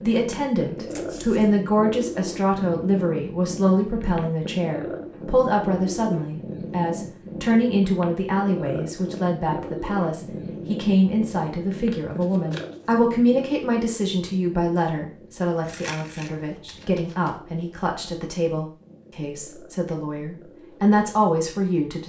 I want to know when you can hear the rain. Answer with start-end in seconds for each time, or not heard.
not heard.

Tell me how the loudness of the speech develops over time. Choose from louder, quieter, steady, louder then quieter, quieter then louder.
steady.